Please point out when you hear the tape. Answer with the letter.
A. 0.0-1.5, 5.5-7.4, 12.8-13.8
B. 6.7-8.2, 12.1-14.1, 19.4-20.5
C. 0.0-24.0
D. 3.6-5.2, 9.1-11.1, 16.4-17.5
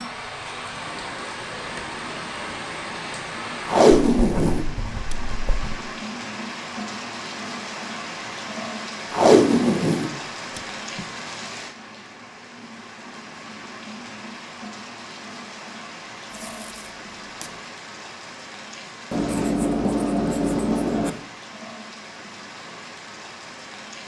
D.